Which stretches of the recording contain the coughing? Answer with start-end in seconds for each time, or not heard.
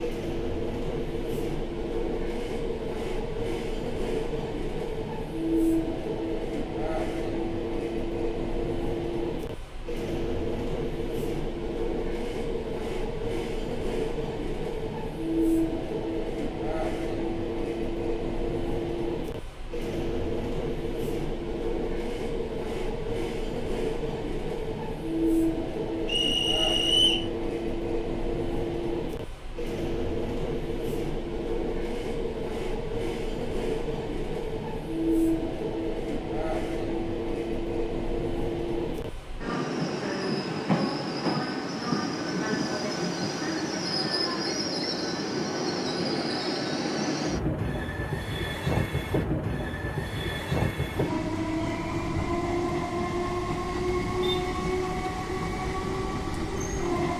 not heard.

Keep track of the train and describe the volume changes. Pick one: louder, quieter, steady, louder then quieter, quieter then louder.
steady.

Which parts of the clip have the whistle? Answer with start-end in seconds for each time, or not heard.
26.1-27.3.